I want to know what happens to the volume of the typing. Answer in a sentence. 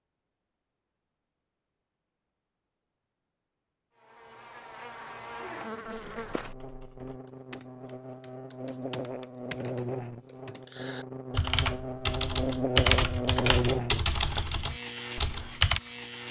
The volume of the typing goes up.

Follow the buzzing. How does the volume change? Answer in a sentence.
The volume of the buzzing goes up.